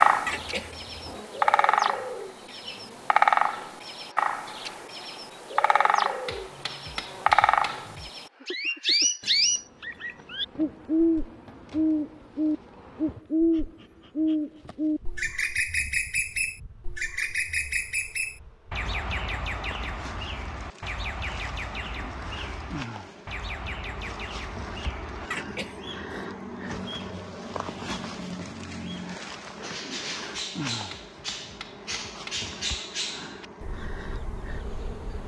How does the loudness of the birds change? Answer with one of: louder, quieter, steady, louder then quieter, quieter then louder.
quieter.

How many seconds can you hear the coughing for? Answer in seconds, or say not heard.
2 s.